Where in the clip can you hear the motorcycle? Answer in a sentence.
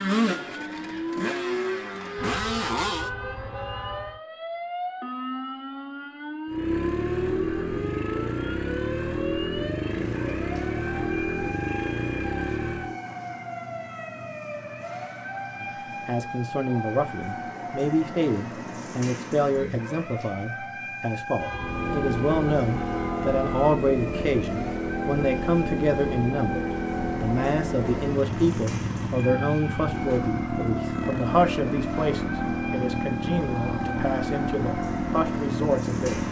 The motorcycle can be heard from 0.0 to 3.1 s, from 6.5 to 13.0 s and from 21.6 to 36.2 s.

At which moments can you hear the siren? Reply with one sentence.
You can hear the siren from 0.0 to 36.2 s.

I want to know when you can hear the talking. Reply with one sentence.
The talking can be heard from 15.6 to 36.2 s.